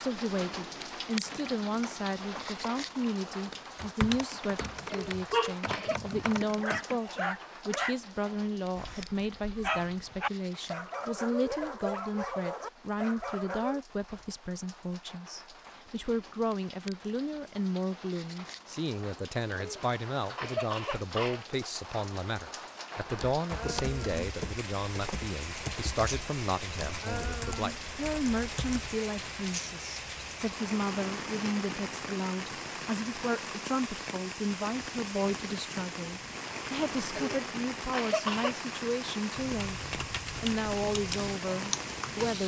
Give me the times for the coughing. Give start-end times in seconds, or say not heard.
4.8-6.0, 19.5-21.4, 37.1-38.5.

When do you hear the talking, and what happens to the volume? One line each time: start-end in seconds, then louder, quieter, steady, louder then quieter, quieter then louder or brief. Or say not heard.
0.0-42.4 steady.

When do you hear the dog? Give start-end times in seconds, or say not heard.
4.8-13.8.